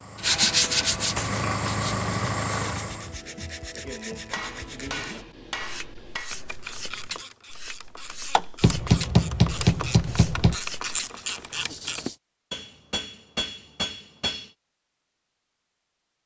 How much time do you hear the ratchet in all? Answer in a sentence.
You can hear the ratchet for 6 seconds altogether.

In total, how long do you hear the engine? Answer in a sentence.
The engine can be heard for 3 seconds in total.